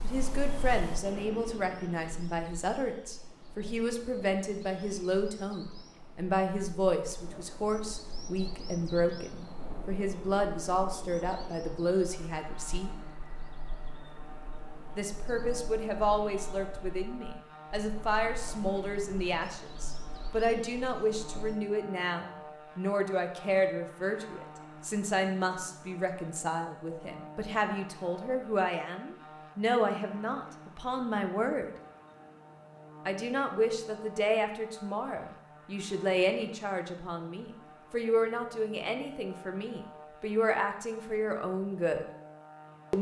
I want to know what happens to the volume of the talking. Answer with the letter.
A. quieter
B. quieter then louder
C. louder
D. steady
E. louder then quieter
D.